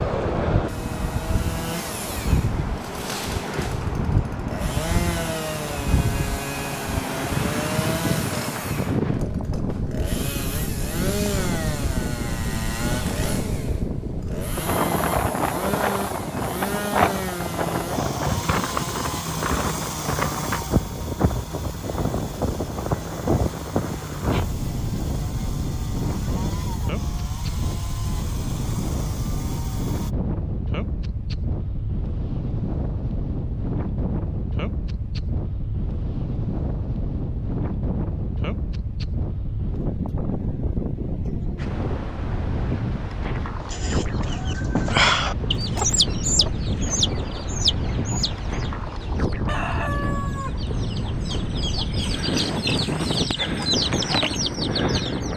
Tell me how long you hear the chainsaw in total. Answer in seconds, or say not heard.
30 s.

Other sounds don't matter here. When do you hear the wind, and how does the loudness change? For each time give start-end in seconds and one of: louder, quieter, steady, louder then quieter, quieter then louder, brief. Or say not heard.
0.0-55.3 steady.